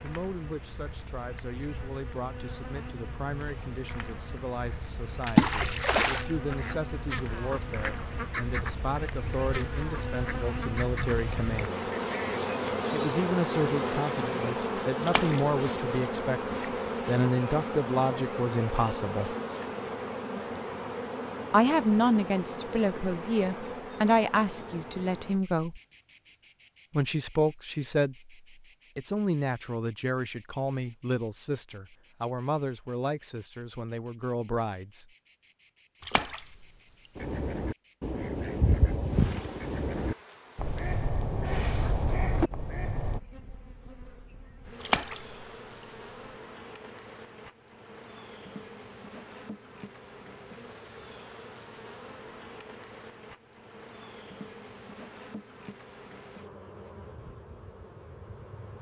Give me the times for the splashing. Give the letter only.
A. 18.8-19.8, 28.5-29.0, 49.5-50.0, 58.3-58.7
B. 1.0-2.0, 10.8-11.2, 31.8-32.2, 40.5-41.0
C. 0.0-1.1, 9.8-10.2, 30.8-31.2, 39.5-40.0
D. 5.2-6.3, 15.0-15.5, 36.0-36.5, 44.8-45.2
D.